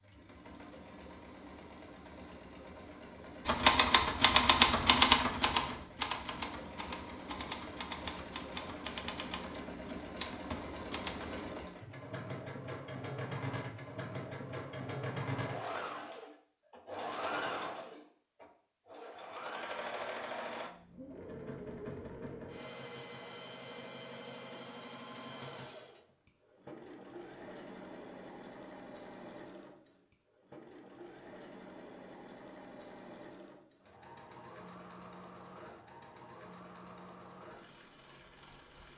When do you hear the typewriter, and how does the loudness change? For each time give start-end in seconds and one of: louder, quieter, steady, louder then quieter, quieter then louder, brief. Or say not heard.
3.5-11.4 quieter.